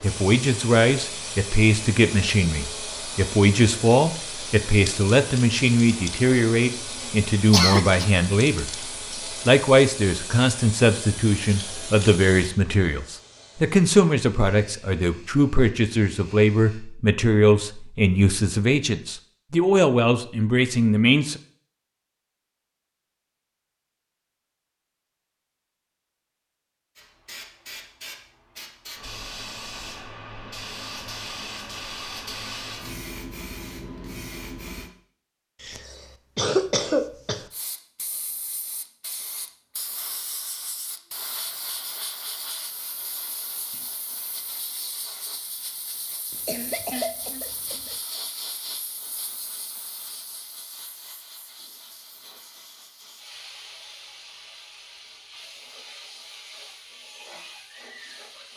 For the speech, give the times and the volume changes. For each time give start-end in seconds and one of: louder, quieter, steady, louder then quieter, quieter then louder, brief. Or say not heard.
0.0-8.7 steady
9.4-21.4 steady.